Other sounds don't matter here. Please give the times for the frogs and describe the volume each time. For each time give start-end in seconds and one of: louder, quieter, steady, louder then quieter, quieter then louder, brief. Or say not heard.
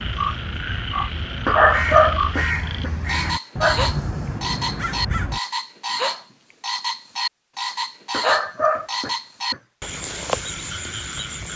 0.0-11.5 steady.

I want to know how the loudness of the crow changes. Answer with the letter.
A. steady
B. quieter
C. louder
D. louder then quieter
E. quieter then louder
C.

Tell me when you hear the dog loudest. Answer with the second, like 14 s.
2 s.